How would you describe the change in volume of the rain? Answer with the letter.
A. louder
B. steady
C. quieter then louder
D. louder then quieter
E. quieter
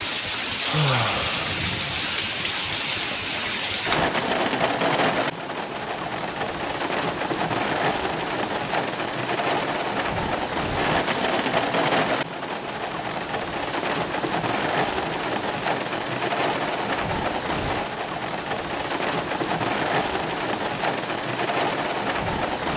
B.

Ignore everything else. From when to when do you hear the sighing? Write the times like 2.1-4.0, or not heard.
0.6-1.6.